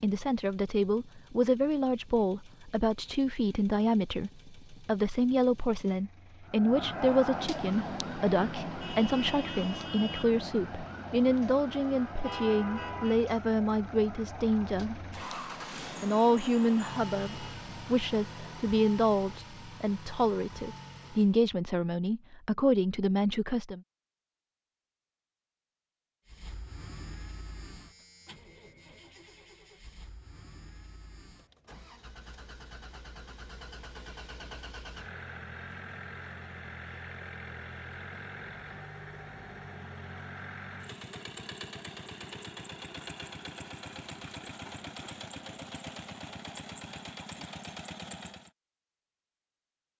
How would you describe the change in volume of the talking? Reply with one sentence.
The loudness of the talking stays about the same.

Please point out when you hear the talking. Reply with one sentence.
You can hear the talking from 0.0 to 15.1 s and from 16.0 to 23.8 s.